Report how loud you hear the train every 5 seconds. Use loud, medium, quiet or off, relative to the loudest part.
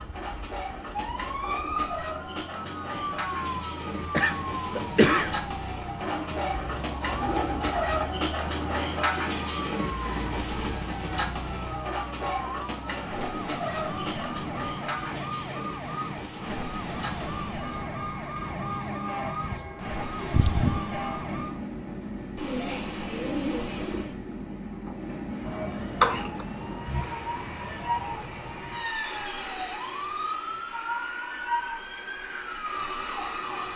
medium, loud, loud, medium, medium, medium, medium.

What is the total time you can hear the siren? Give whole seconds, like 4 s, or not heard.
30 s.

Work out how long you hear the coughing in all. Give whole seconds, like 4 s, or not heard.
4 s.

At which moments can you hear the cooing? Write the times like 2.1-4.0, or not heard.
6.0-8.1, 22.4-24.1.